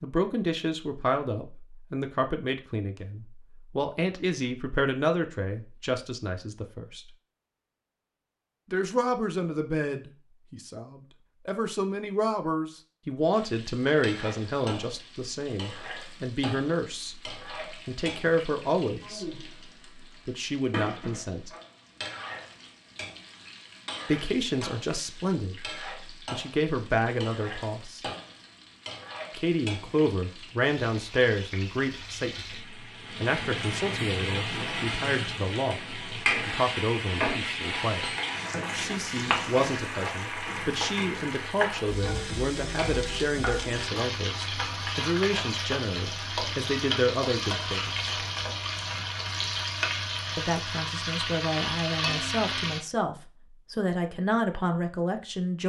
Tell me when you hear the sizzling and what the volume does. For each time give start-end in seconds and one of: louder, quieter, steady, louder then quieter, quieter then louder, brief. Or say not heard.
13.3-52.8 louder.